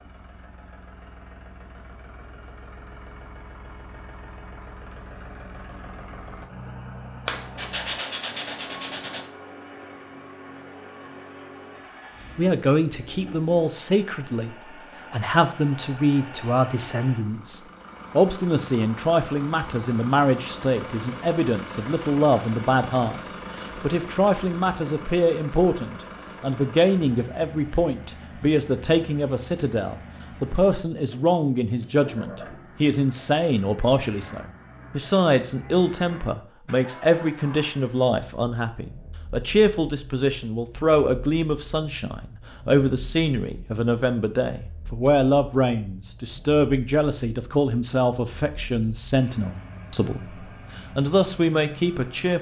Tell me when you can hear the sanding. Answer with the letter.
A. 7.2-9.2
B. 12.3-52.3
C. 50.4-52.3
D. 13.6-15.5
A.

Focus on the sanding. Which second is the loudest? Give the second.
8 s.